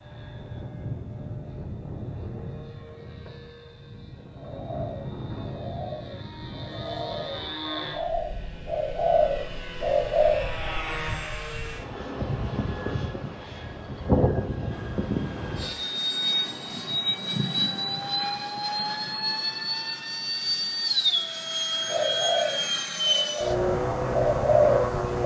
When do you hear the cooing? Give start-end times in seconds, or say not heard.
4.3-10.4, 21.9-25.2.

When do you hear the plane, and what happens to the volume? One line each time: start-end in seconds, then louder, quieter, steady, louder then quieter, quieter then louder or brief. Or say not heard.
0.0-25.2 louder.